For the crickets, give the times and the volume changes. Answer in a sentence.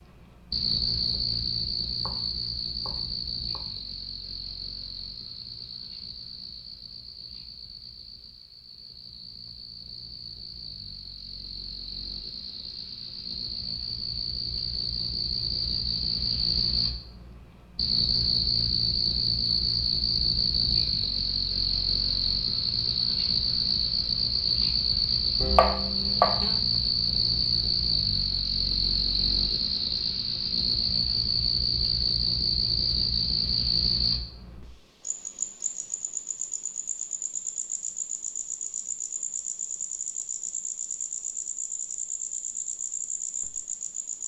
You can hear the crickets from 0.0 to 44.2 s, getting louder then quieter.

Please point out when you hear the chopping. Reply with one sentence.
You can hear the chopping from 1.0 to 3.6 s and from 25.4 to 26.6 s.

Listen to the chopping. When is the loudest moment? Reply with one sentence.
The volume of the chopping peaks at 26 seconds.